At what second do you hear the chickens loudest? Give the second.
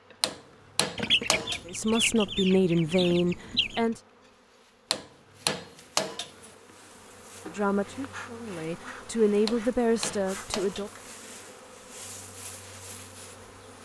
1 s.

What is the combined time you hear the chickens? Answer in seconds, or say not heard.
3 s.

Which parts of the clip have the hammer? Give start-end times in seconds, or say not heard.
0.2-1.6, 4.9-6.5, 9.4-11.1.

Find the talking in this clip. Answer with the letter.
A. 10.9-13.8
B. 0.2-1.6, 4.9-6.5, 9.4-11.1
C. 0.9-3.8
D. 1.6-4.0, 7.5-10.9
D.